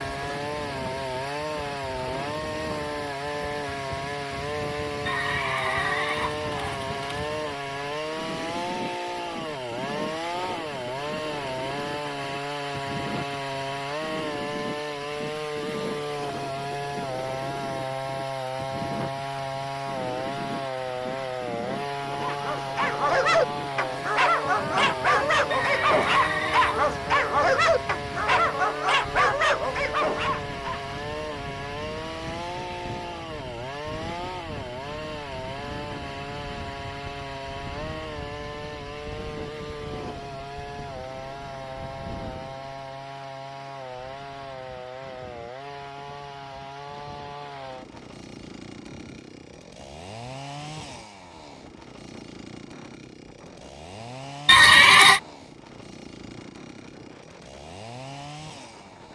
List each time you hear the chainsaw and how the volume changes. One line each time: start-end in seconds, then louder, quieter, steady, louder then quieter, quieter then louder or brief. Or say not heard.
0.0-59.1 quieter.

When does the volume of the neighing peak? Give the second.
55 s.